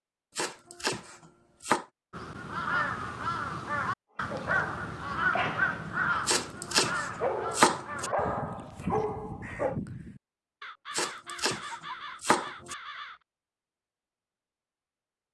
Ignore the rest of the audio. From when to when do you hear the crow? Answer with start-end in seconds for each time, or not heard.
2.1-13.2.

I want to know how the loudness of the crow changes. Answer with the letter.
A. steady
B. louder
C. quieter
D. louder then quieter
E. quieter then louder
C.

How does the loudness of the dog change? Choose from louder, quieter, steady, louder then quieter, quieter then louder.
quieter then louder.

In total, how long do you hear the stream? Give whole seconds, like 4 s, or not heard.
not heard.